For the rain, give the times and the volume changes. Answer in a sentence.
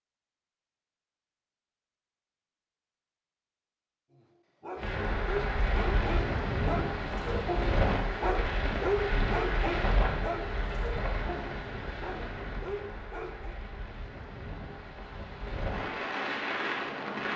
You can hear the rain from 4.8 to 17.3 s, getting quieter then louder.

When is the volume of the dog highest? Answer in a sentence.
The volume of the dog peaks at 9 seconds.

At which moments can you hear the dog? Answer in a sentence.
The dog can be heard from 4.1 to 13.6 s.